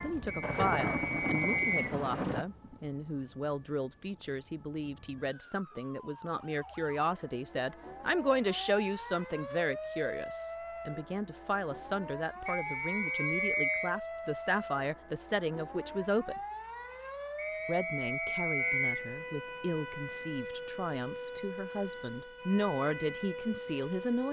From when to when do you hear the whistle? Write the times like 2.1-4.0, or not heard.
0.2-1.9, 12.4-13.9, 17.4-19.1.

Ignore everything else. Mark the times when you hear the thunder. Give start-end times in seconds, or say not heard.
0.4-2.5.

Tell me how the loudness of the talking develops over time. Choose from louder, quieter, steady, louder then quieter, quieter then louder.
steady.